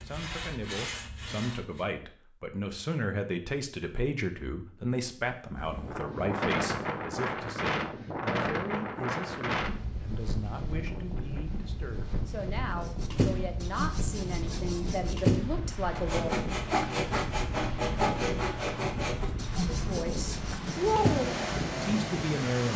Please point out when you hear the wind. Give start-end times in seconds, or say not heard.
5.5-22.7.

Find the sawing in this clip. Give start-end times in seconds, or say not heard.
0.0-1.9, 12.8-21.4.